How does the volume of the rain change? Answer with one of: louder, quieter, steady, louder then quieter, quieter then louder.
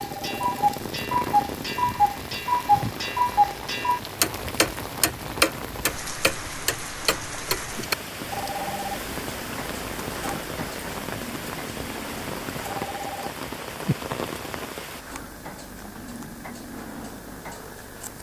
steady.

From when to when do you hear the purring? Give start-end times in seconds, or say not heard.
not heard.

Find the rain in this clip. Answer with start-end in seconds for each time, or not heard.
0.0-15.1.